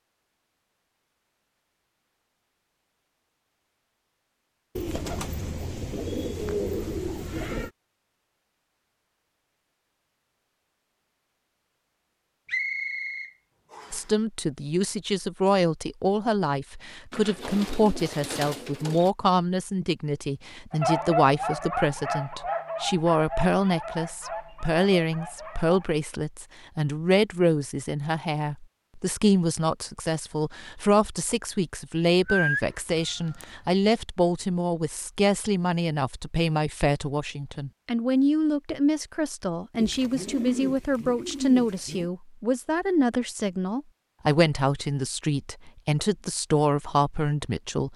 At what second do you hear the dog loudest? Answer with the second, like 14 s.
21 s.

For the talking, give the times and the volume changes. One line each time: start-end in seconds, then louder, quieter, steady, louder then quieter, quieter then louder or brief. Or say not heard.
13.9-47.9 steady.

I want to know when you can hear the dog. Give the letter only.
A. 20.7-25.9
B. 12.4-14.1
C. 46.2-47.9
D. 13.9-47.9
A.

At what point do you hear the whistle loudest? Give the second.
13 s.